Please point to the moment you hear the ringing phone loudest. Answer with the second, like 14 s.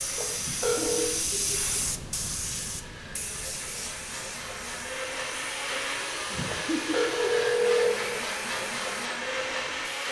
8 s.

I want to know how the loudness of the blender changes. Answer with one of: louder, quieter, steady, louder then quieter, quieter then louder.
louder.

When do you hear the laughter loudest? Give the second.
7 s.